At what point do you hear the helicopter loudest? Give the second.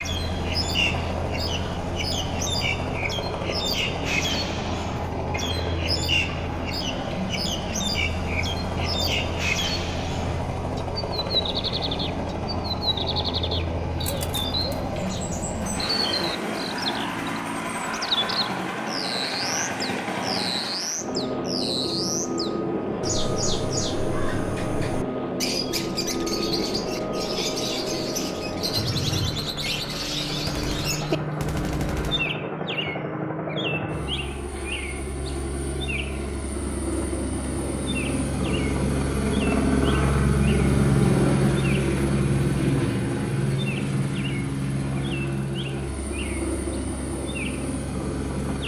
41 s.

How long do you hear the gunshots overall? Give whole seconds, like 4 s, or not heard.
2 s.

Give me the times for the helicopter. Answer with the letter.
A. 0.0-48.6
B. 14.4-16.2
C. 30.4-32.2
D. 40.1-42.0
A.